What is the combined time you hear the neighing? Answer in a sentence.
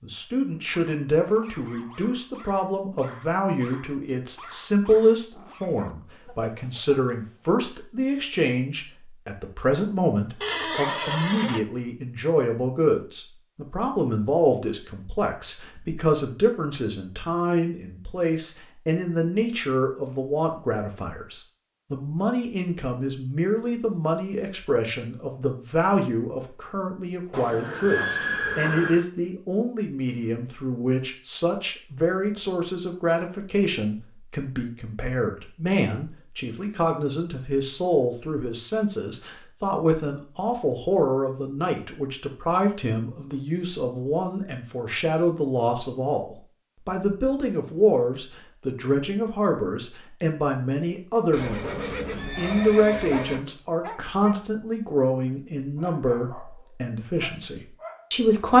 The neighing can be heard for 5 seconds in total.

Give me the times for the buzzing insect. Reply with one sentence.
You can't hear the buzzing insect here.